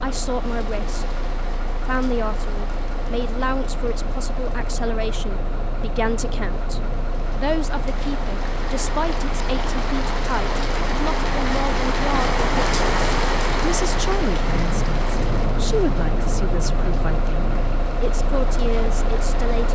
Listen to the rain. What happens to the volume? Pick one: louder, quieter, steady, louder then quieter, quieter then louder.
louder then quieter.